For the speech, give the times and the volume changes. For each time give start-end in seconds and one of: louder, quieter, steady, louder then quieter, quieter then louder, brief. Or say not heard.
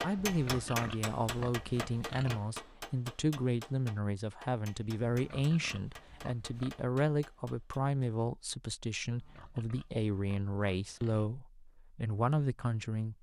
0.0-13.1 steady.